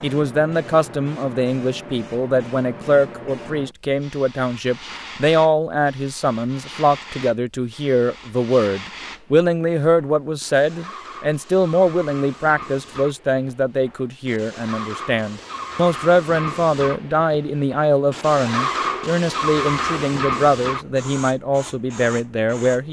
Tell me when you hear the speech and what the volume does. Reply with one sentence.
The speech can be heard from 0.0 to 22.8 s, at a steady volume.